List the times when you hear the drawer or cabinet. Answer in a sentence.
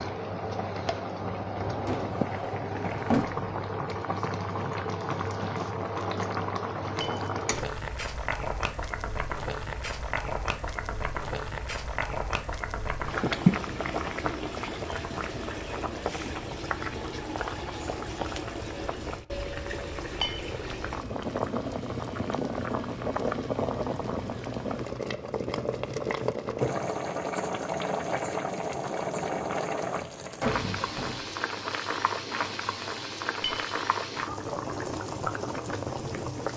The drawer or cabinet can be heard from 1.9 to 3.5 s and from 30.4 to 31.3 s.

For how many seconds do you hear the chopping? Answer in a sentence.
You can't hear the chopping here.